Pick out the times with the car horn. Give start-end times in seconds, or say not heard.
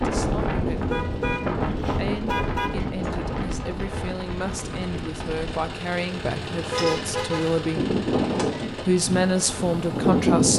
0.8-2.9, 6.2-7.6.